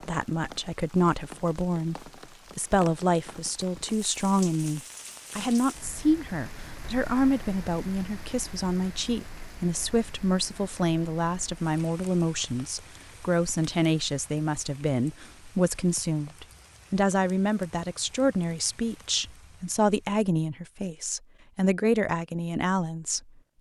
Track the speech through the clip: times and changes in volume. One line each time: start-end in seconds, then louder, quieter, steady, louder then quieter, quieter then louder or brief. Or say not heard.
0.1-23.2 steady.